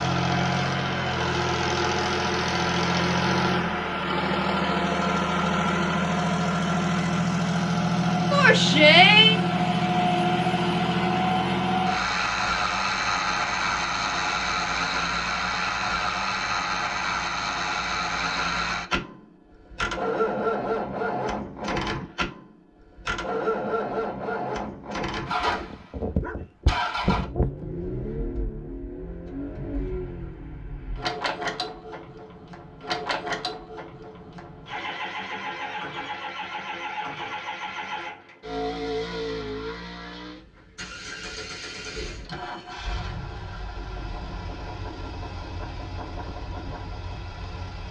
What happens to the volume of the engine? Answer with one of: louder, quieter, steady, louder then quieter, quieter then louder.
quieter.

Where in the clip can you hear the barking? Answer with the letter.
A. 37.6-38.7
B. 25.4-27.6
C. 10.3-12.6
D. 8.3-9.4
B.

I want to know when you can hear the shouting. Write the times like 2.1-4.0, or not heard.
8.3-9.4.